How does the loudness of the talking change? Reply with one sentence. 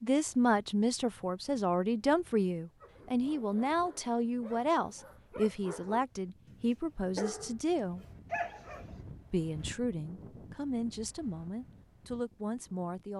The loudness of the talking goes down.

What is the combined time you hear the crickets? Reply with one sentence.
The crickets can't be heard in this clip.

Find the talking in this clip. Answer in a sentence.
You can hear the talking from 0.0 to 8.1 s and from 9.3 to 13.1 s.